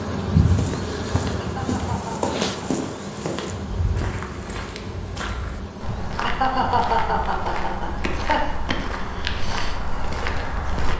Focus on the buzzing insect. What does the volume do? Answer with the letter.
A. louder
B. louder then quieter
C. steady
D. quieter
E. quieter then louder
D.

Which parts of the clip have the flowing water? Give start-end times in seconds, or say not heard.
not heard.